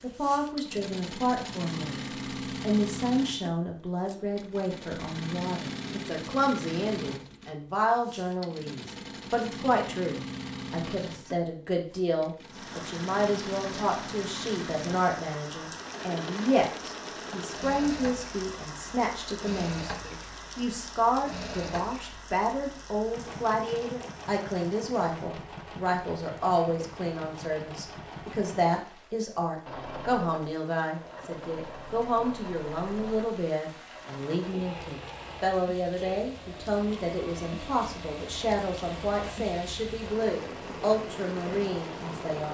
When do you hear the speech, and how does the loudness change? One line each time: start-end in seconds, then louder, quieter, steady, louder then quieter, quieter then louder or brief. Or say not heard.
0.0-42.4 steady.